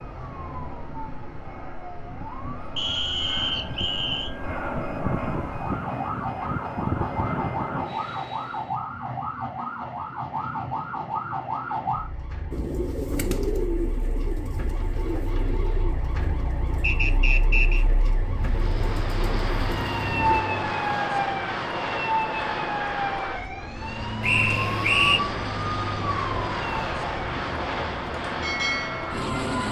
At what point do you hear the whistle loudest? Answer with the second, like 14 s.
25 s.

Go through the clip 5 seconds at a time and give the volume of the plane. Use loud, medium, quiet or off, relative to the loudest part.
medium, loud, off, loud, loud, loud.